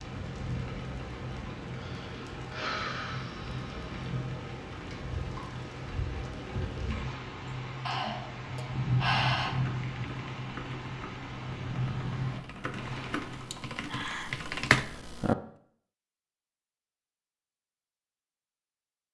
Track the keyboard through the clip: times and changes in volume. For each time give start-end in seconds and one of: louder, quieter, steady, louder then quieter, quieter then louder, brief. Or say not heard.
9.4-15.3 louder.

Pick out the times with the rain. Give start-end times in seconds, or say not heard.
0.0-13.6.